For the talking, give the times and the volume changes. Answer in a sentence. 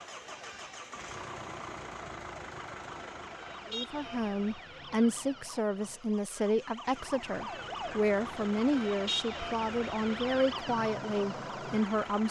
You can hear the talking from 3.7 to 12.2 s, at a steady volume.